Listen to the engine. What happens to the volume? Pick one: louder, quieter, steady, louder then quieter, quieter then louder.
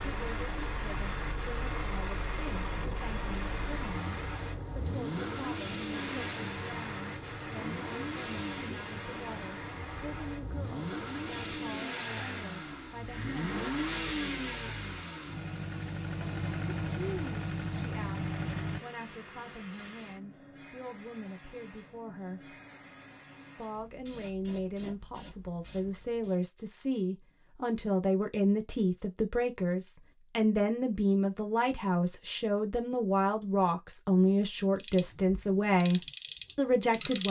louder.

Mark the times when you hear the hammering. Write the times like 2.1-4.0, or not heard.
not heard.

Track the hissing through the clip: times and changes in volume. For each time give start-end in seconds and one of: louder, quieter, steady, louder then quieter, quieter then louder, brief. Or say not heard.
0.0-26.4 quieter.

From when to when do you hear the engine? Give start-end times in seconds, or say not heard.
0.0-18.8.